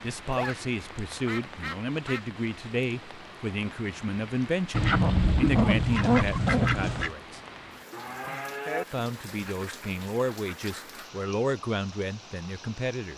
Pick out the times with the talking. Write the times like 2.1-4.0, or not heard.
0.0-7.4, 8.9-13.1.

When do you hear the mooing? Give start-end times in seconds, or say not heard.
7.9-8.8.